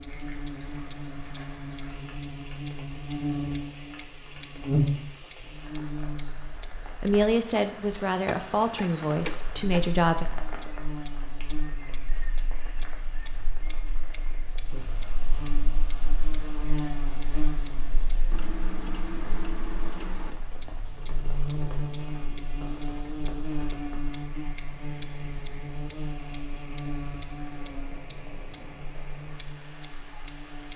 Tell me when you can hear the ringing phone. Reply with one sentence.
You can't hear the ringing phone here.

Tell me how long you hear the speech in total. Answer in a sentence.
You can hear the speech for 3 seconds altogether.